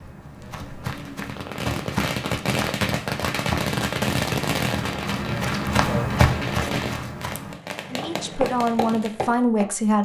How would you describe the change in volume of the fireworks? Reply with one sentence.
The volume of the fireworks goes down.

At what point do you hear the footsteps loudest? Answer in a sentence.
The volume of the footsteps peaks at 6 seconds.